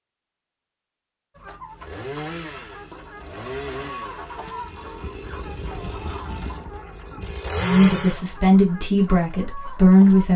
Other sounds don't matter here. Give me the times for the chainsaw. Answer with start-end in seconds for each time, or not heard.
1.8-8.2.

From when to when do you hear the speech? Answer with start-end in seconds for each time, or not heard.
7.6-10.3.